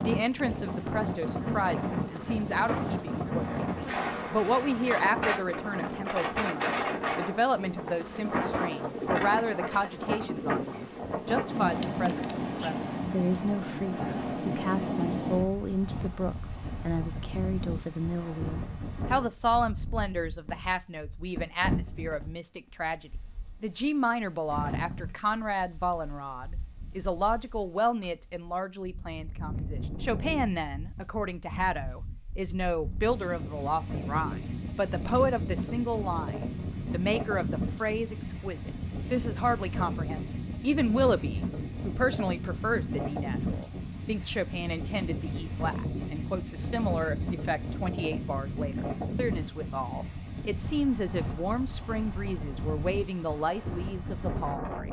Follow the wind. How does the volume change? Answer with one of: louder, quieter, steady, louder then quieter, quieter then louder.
quieter then louder.